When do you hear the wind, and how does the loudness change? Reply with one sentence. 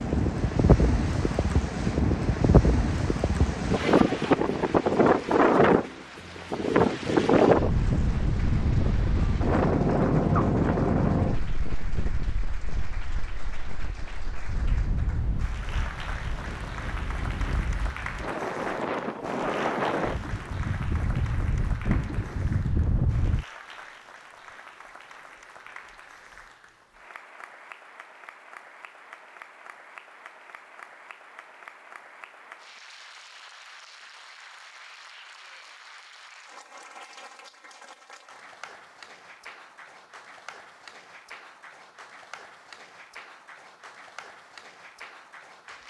The wind can be heard from 0.0 to 23.4 s, getting quieter then louder.